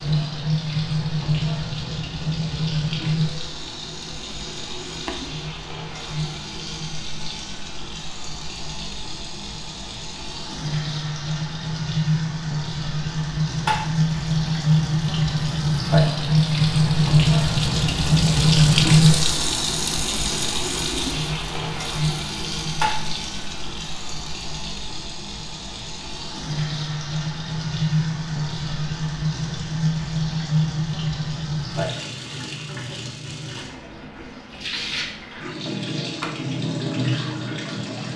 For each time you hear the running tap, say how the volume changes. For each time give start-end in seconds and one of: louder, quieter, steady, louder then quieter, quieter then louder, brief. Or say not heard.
0.0-38.1 louder then quieter.